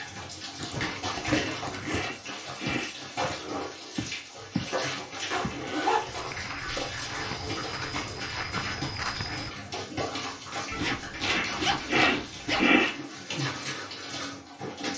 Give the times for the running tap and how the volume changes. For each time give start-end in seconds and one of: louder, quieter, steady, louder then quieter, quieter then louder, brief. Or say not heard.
0.0-14.9 steady.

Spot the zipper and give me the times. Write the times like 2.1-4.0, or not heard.
0.6-2.0, 5.3-6.8, 10.7-12.9.